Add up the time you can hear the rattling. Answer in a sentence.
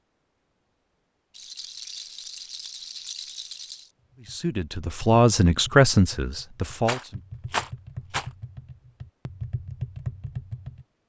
You can hear the rattling for 4 seconds altogether.